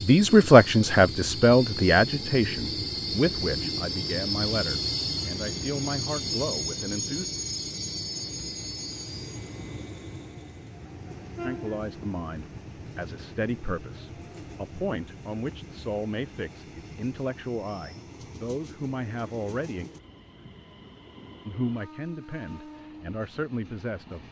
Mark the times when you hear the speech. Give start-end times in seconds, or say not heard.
0.0-7.2, 11.4-19.9, 21.4-24.2.